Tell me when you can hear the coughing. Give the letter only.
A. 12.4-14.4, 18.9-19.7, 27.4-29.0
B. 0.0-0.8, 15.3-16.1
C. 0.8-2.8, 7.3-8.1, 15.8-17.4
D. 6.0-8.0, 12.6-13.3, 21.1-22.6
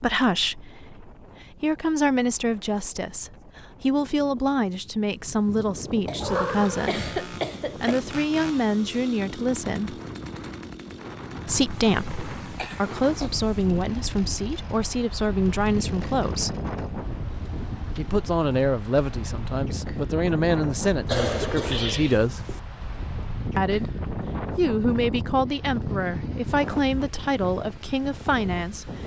D.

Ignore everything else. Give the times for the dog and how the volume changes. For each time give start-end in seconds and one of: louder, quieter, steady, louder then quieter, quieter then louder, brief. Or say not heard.
not heard.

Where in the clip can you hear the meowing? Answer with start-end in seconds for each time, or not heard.
6.2-6.9, 21.5-22.2.